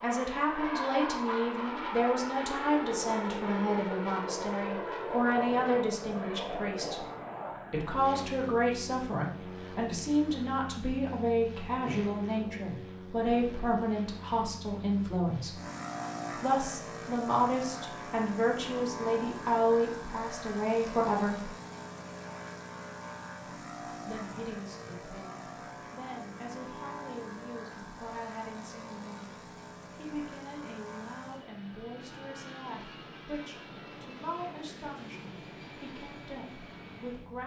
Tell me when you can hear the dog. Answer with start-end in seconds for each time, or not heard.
not heard.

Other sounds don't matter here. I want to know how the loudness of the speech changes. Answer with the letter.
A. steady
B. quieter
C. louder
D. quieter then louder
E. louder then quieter
B.